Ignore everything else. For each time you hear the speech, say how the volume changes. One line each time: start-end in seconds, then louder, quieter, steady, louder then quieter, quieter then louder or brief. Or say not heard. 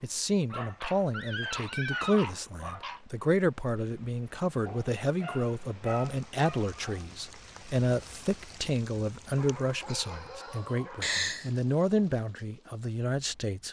0.0-13.6 steady.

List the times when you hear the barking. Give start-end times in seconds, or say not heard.
0.5-3.0, 4.7-7.0, 9.3-11.1.